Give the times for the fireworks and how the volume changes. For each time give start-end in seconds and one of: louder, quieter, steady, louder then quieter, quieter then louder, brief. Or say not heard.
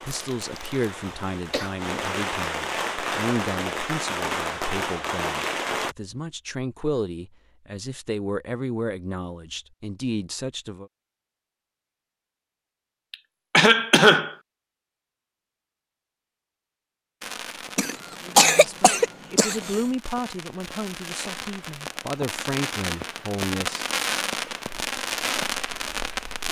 0.0-6.0 louder
17.2-26.4 louder.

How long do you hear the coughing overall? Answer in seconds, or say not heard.
5 s.